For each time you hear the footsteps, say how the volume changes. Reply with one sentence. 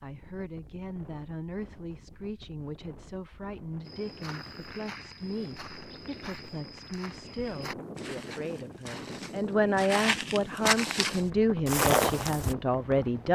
The footsteps can be heard from 3.9 to 12.6 s, getting louder.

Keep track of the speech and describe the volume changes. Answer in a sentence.
The volume of the speech goes up.